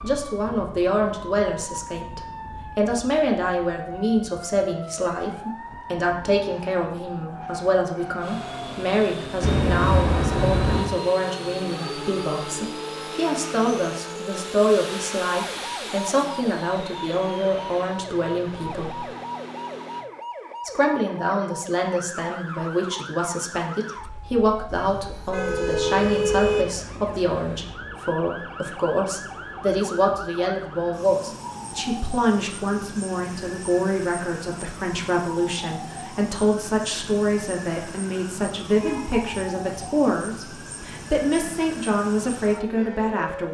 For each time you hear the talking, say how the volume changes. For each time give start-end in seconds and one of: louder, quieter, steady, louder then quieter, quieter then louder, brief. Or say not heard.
0.0-19.1 steady
20.6-43.4 steady.